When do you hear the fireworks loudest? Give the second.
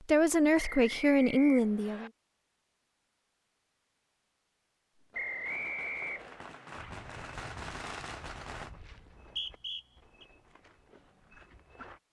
8 s.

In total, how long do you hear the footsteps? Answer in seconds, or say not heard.
5 s.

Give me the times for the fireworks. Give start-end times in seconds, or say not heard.
5.0-8.8.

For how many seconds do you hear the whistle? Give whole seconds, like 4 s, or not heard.
4 s.